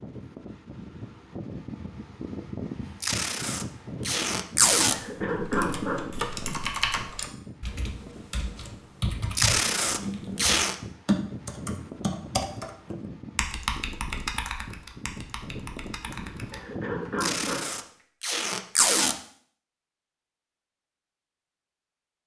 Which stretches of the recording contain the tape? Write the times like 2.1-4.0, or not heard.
3.0-5.0, 9.3-10.8, 17.2-19.1.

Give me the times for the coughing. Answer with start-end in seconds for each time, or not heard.
4.9-6.7, 16.5-17.6.